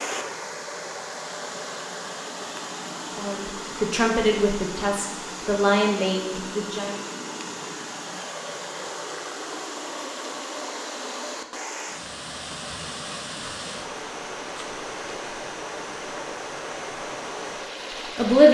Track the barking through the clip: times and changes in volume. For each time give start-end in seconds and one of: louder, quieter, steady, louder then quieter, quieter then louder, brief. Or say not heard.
not heard.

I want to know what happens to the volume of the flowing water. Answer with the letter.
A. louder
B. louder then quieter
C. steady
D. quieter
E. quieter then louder
C.